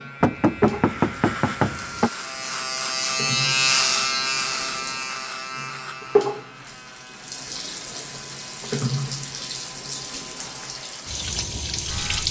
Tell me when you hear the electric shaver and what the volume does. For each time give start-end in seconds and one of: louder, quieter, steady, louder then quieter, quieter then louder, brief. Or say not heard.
0.0-12.2 louder then quieter.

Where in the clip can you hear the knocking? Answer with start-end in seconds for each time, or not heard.
0.2-2.1.